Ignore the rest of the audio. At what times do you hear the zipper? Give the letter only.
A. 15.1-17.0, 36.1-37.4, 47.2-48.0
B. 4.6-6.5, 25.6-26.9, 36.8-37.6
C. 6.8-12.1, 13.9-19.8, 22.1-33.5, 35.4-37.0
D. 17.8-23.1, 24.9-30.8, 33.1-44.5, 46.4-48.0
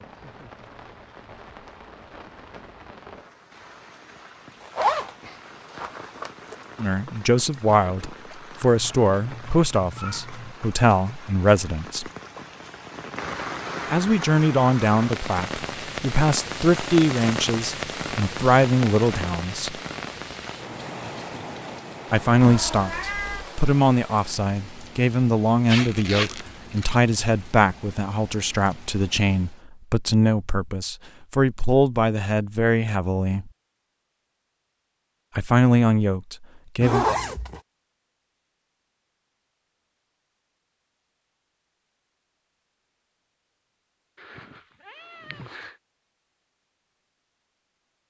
B.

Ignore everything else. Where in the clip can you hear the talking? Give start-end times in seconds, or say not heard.
6.8-12.1, 13.9-19.8, 22.1-33.5, 35.4-37.0.